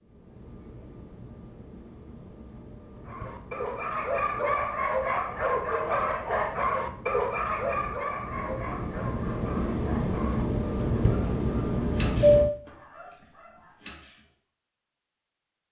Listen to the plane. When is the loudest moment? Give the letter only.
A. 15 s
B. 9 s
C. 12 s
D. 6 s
C.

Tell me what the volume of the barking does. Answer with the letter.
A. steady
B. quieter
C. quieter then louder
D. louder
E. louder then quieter
B.